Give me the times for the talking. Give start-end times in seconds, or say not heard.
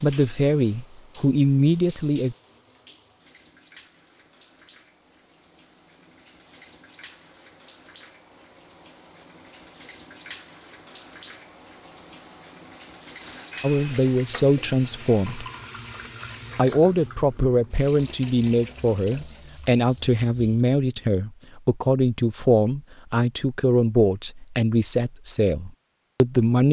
0.0-2.4, 13.6-15.4, 16.6-26.6.